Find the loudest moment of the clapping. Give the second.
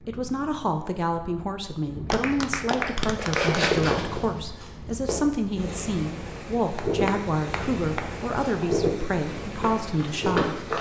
3 s.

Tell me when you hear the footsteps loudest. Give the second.
4 s.